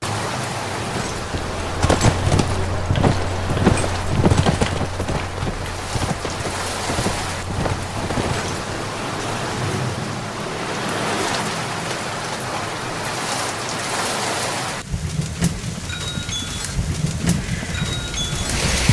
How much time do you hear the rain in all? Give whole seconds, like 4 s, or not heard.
19 s.